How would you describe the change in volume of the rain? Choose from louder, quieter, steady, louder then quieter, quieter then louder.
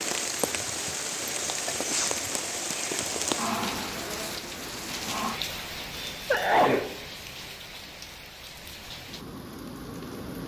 quieter.